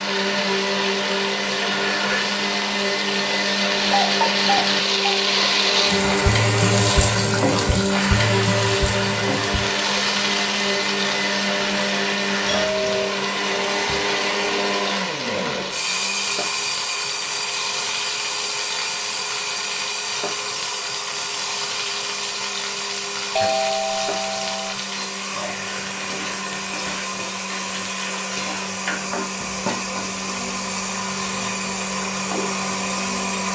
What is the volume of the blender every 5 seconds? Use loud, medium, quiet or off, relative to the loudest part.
loud, loud, loud, loud, medium, medium, loud.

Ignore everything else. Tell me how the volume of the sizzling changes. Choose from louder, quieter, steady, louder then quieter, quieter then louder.
quieter.